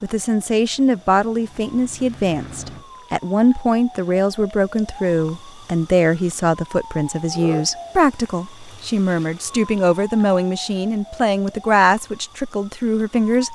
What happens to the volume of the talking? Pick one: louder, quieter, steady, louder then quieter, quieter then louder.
steady.